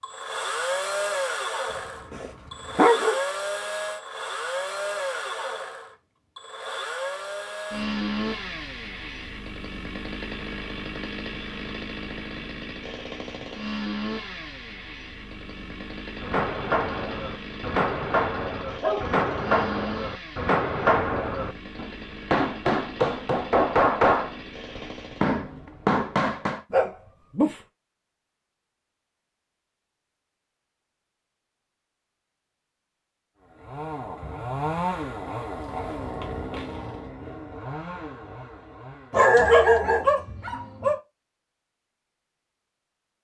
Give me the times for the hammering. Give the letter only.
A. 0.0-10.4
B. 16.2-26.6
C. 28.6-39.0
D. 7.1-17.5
B.